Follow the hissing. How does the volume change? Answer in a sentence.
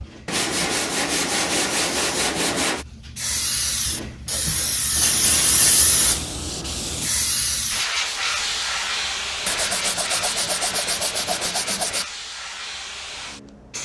The loudness of the hissing goes up, then down.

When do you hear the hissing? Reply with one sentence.
The hissing can be heard from 0.0 to 13.8 s.